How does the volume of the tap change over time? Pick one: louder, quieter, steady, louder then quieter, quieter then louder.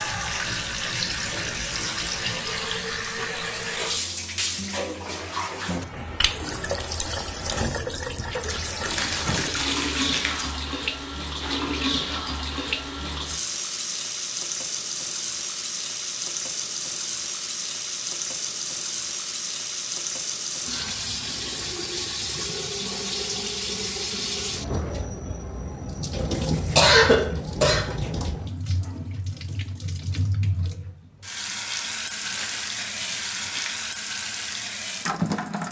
steady.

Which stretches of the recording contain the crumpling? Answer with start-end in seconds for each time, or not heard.
8.8-10.6, 32.2-33.9.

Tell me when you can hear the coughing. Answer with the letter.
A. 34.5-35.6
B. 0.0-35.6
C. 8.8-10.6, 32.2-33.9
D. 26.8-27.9
D.